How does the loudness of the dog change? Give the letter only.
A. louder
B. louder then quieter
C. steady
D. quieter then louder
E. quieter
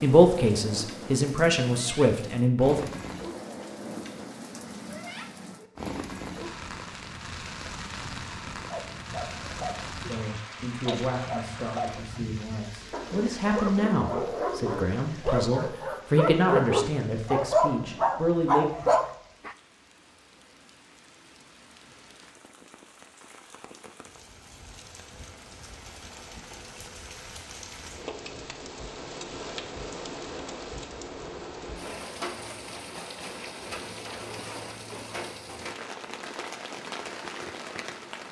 A.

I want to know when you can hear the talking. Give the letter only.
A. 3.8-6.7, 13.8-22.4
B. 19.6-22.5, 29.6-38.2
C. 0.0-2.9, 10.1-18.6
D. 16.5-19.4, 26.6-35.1
C.